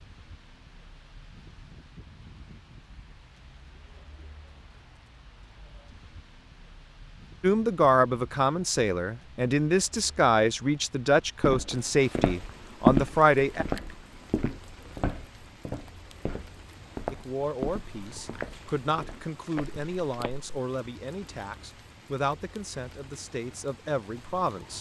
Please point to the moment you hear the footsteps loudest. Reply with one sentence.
The loudest moment of the footsteps is at 13 seconds.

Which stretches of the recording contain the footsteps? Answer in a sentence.
You can hear the footsteps from 11.4 to 20.5 s.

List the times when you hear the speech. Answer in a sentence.
The speech can be heard from 7.4 to 13.7 s and from 17.1 to 24.7 s.